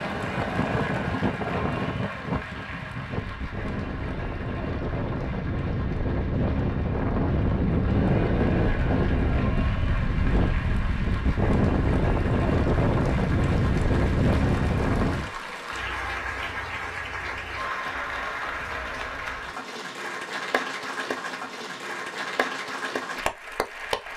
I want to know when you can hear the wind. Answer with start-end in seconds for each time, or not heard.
0.0-15.3.